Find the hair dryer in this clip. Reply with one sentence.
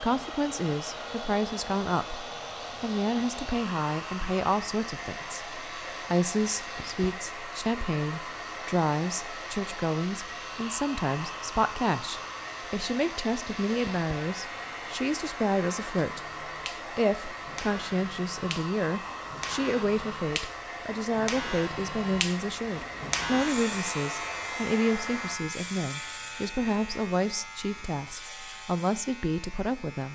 The hair dryer can be heard from 0.0 to 25.4 s.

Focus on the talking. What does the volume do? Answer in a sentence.
The loudness of the talking stays about the same.